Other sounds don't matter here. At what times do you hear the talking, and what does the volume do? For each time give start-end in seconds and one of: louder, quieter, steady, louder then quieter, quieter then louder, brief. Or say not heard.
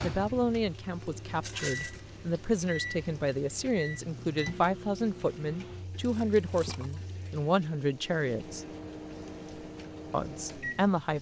0.0-8.7 steady
10.1-11.1 brief.